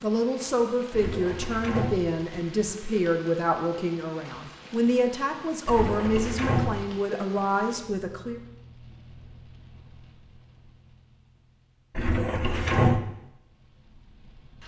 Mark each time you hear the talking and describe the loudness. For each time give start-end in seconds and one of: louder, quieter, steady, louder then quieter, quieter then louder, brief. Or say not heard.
0.0-8.4 steady.